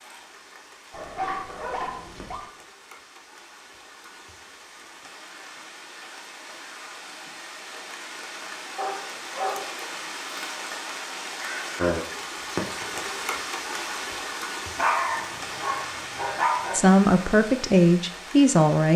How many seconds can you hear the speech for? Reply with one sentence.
The speech can be heard for 2 seconds in total.